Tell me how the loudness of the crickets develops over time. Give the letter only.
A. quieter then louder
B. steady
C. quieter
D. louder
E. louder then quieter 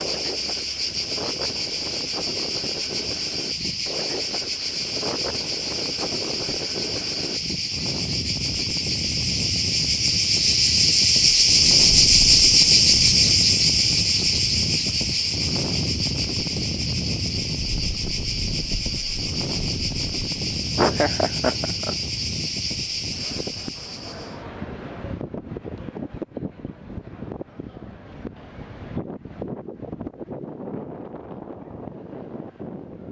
E.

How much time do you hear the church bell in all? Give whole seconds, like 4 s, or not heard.
not heard.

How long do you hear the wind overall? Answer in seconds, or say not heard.
33 s.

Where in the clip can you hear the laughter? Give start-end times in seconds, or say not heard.
20.8-21.9.